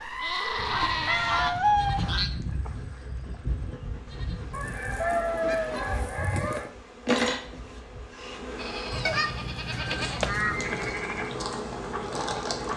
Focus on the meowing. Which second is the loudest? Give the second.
2 s.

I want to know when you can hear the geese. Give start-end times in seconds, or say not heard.
0.6-2.3, 4.5-6.7, 9.1-10.7.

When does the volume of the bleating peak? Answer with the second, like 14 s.
1 s.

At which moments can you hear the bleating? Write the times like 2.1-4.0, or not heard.
0.0-4.8, 8.6-12.7.